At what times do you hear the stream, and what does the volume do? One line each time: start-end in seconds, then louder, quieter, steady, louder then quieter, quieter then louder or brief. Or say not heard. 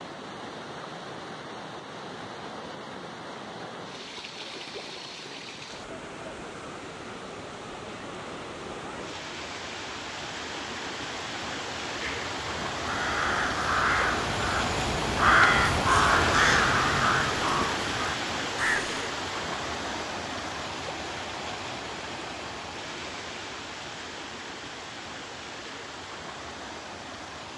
0.0-27.5 louder then quieter.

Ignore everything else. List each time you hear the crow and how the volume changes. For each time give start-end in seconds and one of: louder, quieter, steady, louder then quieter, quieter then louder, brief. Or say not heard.
11.9-19.0 louder then quieter.